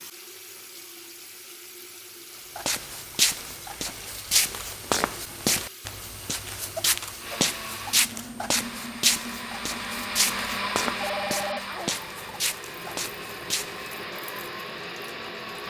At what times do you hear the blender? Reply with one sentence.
The blender can be heard from 7.2 to 15.6 s.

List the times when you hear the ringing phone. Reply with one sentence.
The ringing phone can be heard from 11.0 to 12.0 s.